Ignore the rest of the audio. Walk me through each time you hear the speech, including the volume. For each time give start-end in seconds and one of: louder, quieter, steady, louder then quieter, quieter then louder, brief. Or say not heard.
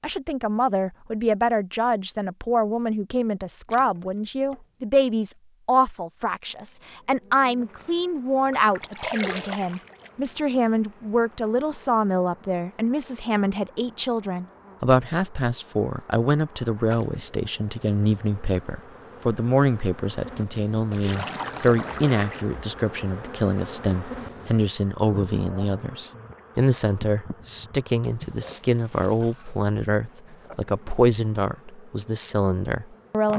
0.0-33.3 steady.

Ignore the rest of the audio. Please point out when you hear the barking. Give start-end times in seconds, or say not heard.
not heard.